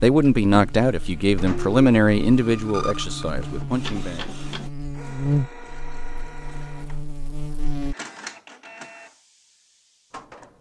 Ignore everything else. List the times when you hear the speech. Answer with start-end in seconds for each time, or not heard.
0.0-4.3.